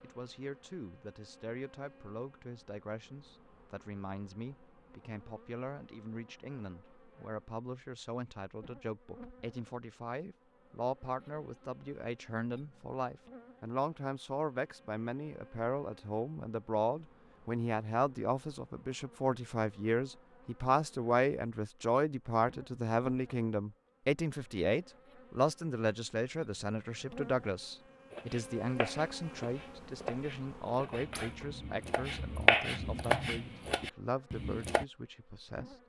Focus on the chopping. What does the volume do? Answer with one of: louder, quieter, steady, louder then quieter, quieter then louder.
louder then quieter.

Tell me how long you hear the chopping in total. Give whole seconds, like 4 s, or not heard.
7 s.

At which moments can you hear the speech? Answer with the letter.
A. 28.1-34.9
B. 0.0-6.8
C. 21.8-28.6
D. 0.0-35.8
D.